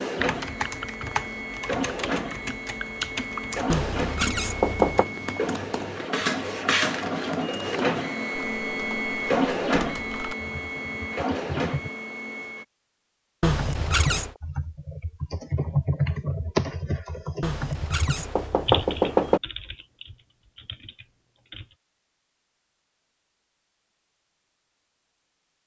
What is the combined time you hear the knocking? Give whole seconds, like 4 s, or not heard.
4 s.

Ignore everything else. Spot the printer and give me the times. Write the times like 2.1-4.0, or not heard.
0.0-12.7.